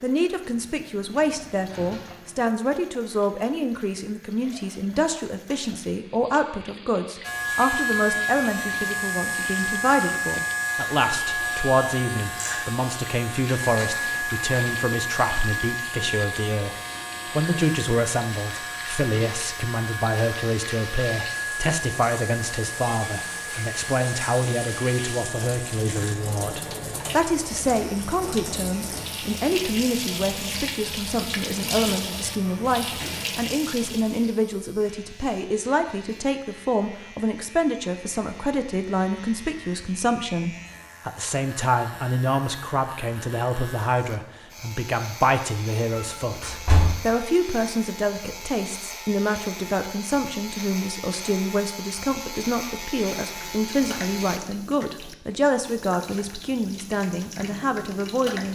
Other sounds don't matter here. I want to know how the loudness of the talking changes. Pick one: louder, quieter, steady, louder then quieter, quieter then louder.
steady.